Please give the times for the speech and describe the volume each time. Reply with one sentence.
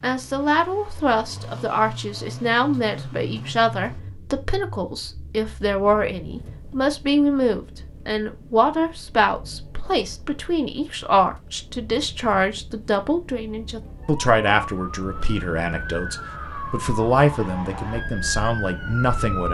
You can hear the speech from 0.0 to 19.4 s, at a steady volume.